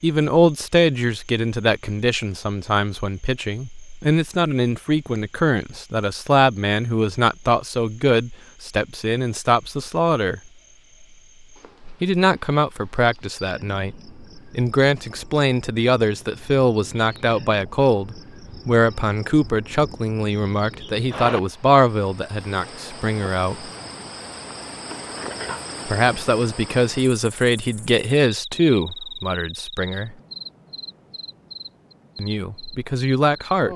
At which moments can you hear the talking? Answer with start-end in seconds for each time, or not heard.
0.0-10.4, 12.0-23.7, 25.9-30.1, 32.1-33.7.